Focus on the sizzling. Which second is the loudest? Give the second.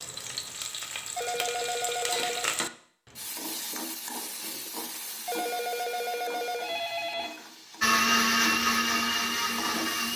2 s.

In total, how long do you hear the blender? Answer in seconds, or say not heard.
2 s.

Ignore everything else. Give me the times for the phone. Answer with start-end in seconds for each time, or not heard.
1.1-2.5, 5.2-7.3.